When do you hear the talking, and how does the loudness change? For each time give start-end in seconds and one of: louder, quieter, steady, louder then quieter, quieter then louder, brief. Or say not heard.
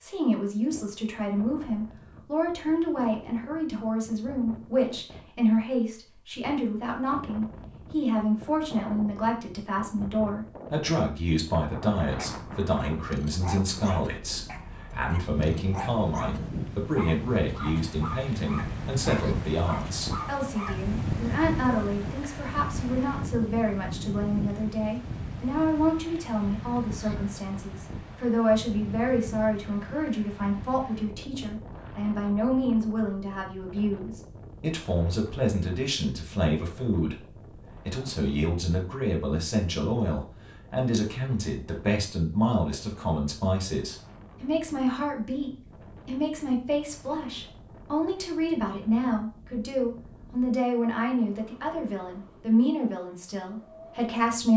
0.0-54.5 steady.